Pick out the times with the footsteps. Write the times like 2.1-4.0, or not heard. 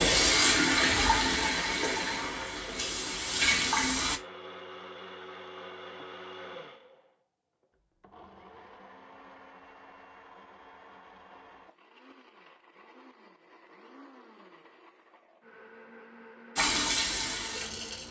not heard.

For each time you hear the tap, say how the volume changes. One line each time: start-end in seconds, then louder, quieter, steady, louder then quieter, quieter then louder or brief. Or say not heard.
0.0-4.2 quieter then louder
16.6-18.0 brief.